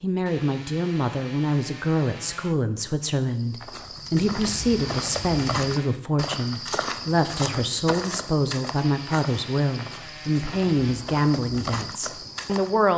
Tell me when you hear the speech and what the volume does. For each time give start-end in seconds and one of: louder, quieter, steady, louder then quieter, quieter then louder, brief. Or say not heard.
0.0-12.9 steady.